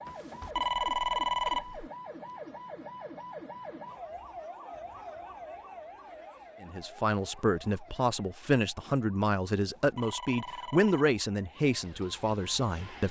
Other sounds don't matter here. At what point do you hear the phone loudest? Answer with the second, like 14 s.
1 s.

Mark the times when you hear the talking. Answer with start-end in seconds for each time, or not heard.
6.6-13.0.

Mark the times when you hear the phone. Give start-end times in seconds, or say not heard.
0.1-1.9, 9.6-11.1.